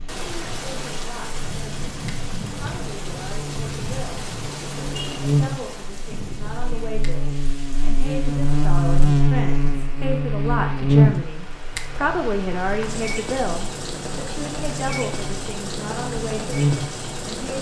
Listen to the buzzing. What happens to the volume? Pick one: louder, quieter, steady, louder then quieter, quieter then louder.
louder then quieter.